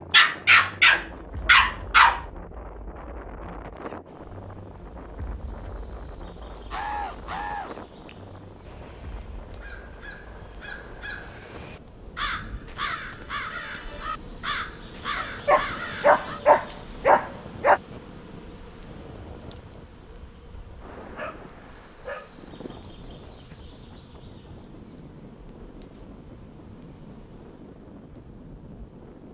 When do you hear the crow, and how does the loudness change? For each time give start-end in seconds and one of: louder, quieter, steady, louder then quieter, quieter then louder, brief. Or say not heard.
6.7-16.4 quieter then louder.